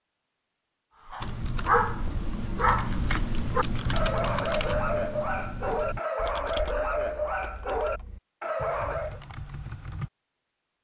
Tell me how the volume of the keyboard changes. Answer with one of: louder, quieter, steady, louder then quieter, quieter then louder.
quieter.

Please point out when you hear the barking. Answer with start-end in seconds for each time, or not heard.
1.1-9.2.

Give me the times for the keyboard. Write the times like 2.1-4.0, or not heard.
1.2-10.1.